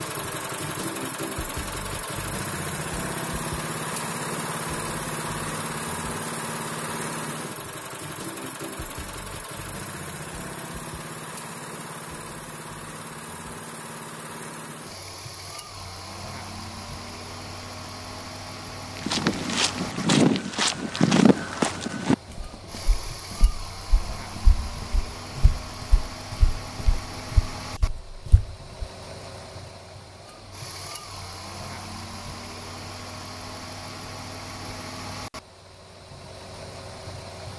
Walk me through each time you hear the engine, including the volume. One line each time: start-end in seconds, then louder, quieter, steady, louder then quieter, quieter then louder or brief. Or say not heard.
0.0-37.5 quieter.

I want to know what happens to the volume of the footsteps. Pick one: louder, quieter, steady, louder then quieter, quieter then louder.
quieter.